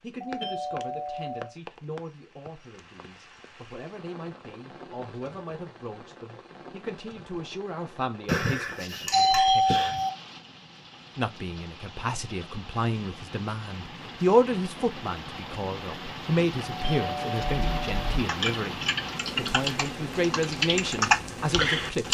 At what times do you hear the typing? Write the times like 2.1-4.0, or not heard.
17.6-22.0.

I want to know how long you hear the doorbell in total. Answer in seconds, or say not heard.
5 s.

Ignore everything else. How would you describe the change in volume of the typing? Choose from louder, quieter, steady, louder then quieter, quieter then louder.
louder.